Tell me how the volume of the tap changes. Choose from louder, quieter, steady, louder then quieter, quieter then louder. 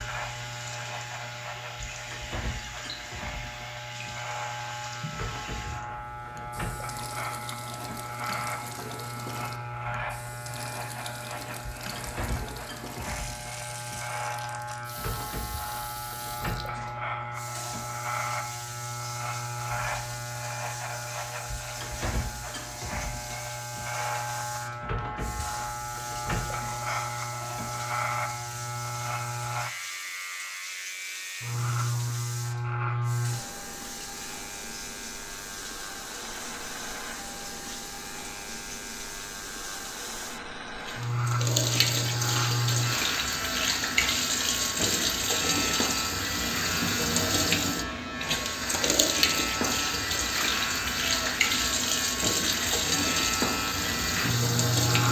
louder.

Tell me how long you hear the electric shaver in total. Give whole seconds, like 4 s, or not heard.
55 s.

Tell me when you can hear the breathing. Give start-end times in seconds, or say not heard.
not heard.